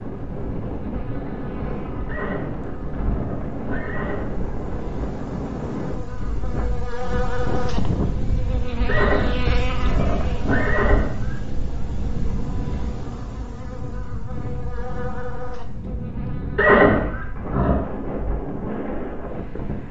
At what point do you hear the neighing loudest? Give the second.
17 s.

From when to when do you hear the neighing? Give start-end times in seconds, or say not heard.
2.0-4.4, 8.8-11.4, 16.6-17.9.